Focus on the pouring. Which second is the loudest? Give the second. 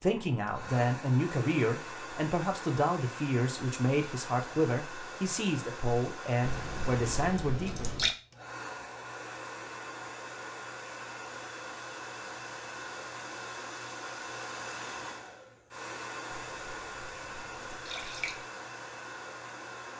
8 s.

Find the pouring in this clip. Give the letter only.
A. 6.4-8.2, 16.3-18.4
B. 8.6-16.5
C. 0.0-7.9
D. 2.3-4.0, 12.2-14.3
A.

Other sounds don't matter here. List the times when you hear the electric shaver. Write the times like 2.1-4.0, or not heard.
not heard.